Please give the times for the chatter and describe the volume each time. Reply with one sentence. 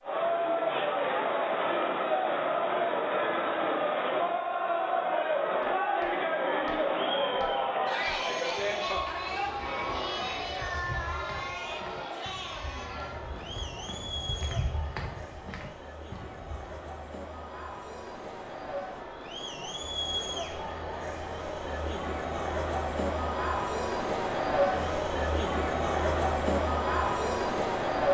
You can hear the chatter from 0.0 to 28.0 s, getting quieter then louder.